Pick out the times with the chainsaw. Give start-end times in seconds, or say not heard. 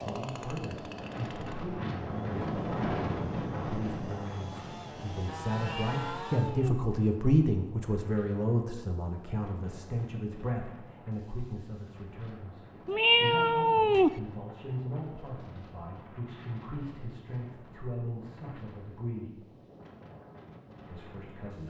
0.0-6.6.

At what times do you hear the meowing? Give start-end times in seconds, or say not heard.
5.5-6.8, 12.8-14.2.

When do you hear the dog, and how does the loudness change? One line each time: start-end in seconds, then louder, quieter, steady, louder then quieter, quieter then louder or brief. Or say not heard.
not heard.